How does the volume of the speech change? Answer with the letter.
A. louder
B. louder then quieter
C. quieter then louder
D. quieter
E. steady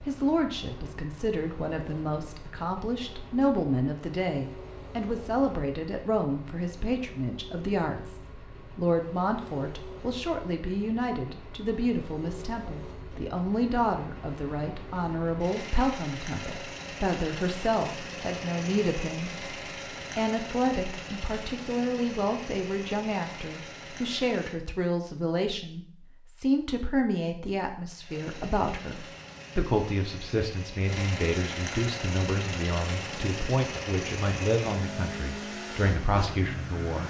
E.